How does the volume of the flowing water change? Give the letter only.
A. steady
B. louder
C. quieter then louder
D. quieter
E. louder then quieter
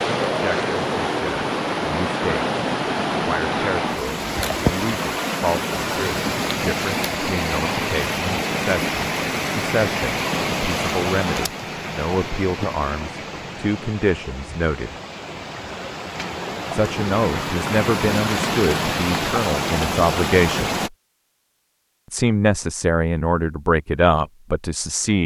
C.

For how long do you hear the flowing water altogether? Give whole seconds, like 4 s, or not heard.
21 s.